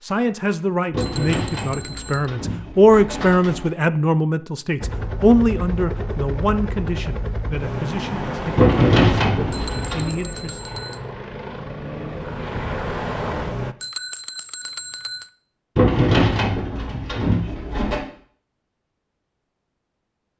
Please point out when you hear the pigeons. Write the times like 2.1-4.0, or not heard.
0.9-3.7, 8.6-10.1, 15.8-18.0.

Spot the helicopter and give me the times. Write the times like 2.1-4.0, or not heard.
4.8-13.8.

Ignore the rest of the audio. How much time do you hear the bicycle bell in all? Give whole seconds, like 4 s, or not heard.
4 s.